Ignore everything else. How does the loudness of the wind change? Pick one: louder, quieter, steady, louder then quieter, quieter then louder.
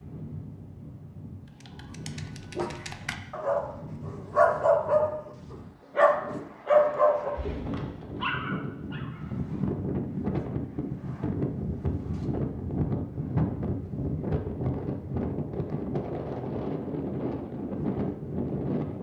louder.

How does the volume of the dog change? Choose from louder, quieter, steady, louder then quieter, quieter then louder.
louder then quieter.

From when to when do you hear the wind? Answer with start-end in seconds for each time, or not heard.
0.0-18.9.